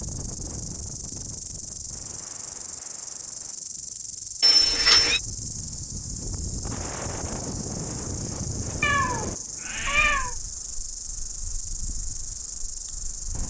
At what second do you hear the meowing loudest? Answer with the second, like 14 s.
5 s.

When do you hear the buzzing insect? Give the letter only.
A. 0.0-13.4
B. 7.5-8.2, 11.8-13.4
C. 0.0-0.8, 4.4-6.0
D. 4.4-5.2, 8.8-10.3
A.